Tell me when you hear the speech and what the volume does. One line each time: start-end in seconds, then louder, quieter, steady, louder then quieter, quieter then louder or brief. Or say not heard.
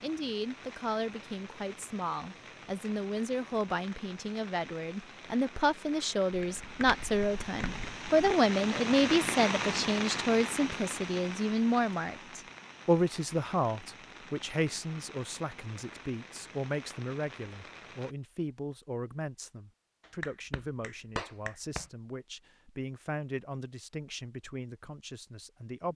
0.0-25.9 louder then quieter.